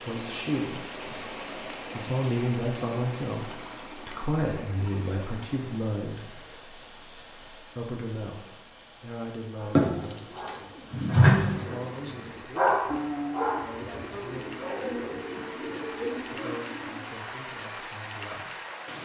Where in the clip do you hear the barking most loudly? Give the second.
11 s.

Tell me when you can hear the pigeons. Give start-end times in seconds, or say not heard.
9.8-17.2.